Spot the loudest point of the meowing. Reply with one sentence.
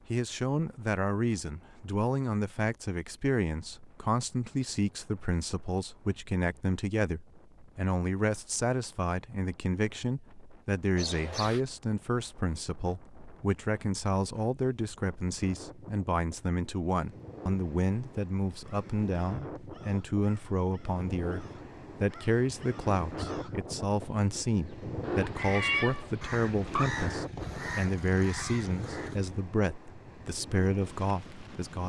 The loudest moment of the meowing is at 26 seconds.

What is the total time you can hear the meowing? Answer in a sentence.
You can hear the meowing for 3 seconds altogether.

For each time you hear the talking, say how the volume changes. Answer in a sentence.
The talking can be heard from 0.1 to 31.8 s, at a steady volume.